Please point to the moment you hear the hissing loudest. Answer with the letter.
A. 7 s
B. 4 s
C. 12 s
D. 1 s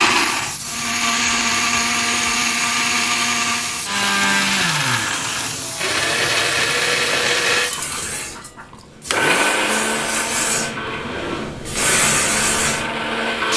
C.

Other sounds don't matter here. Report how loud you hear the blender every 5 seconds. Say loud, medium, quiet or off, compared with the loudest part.
loud, loud, medium.